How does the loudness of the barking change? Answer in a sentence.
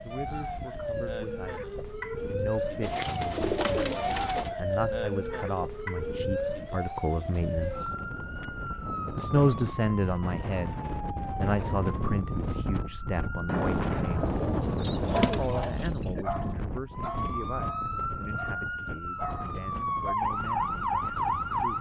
The volume of the barking goes down, then up.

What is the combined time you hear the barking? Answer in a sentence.
You can hear the barking for 5 seconds altogether.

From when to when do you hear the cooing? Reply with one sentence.
The cooing can be heard from 2.8 to 4.5 s and from 14.2 to 16.2 s.